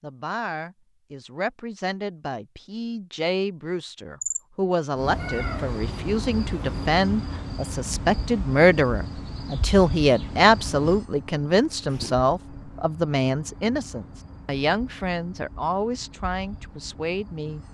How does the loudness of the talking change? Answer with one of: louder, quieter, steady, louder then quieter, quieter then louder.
louder then quieter.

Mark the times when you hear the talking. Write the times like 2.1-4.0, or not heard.
0.0-17.6.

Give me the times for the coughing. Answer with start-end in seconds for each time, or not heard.
not heard.